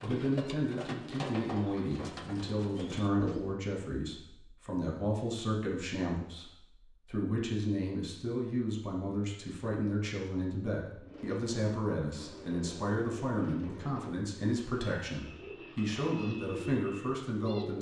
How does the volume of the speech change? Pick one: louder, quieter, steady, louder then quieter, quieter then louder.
steady.